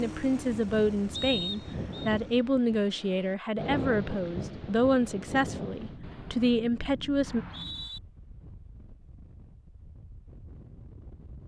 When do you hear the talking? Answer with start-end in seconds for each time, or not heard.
0.0-7.5.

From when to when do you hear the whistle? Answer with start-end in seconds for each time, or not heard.
1.1-2.1, 7.2-8.0.